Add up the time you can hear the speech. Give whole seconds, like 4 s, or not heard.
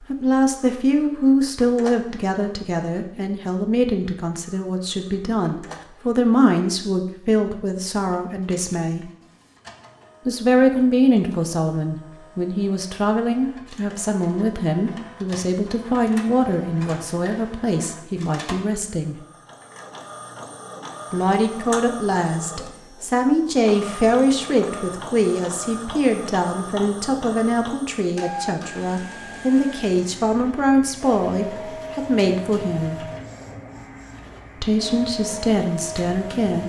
32 s.